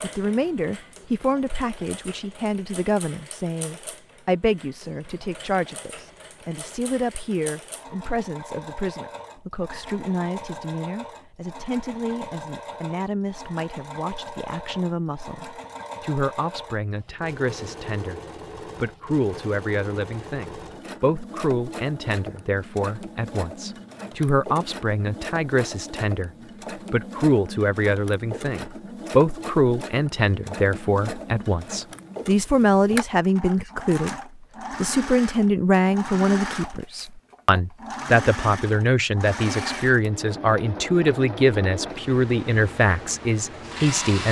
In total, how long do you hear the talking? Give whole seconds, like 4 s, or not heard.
43 s.